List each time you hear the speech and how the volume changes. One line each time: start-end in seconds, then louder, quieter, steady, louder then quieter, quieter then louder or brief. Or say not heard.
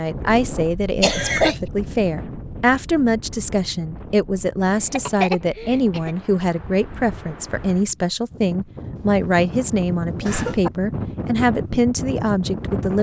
0.0-12.9 steady.